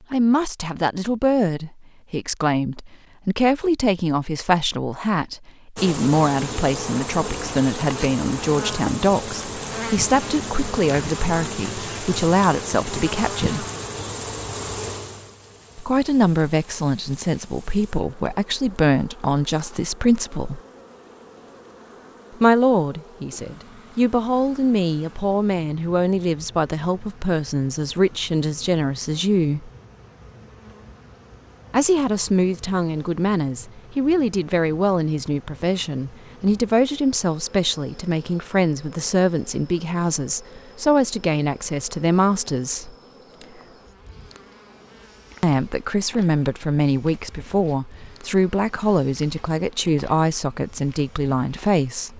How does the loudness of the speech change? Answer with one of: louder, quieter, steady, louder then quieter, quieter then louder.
steady.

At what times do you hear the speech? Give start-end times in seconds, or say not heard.
0.1-13.7, 15.8-20.6, 22.4-29.7, 31.7-42.9, 45.4-52.1.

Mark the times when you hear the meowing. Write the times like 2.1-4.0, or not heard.
not heard.